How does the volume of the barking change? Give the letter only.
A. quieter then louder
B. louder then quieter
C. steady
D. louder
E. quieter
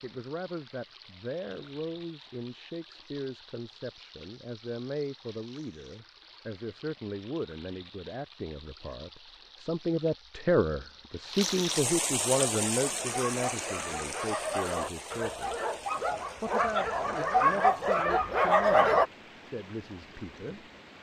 D.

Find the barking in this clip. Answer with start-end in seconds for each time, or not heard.
12.3-19.1.